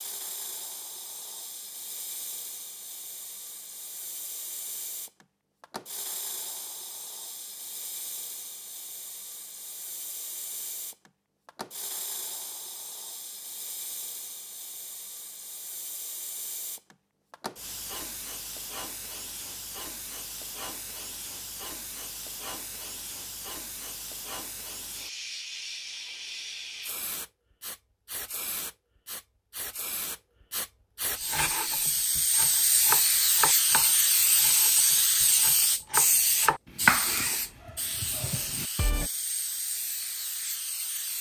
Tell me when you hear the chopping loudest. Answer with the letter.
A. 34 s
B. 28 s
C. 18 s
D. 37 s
D.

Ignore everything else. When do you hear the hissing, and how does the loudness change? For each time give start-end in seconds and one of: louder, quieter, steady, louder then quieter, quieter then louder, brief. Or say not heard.
0.0-41.1 louder.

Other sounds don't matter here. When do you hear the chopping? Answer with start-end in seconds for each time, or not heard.
31.2-39.0.